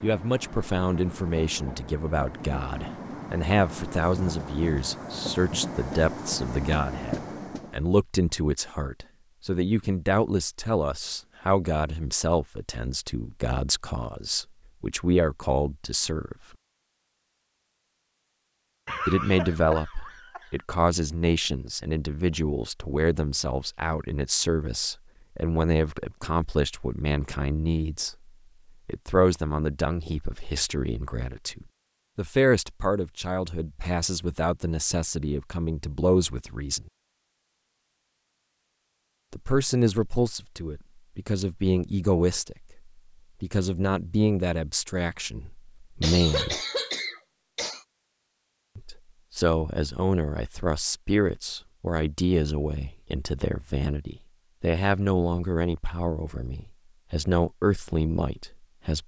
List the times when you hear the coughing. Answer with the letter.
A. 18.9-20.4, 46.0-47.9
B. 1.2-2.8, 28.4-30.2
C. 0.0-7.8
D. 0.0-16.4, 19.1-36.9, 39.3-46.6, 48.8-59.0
A.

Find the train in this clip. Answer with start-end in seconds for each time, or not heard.
0.0-7.8.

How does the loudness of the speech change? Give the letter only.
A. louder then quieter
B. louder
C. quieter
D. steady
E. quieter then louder
D.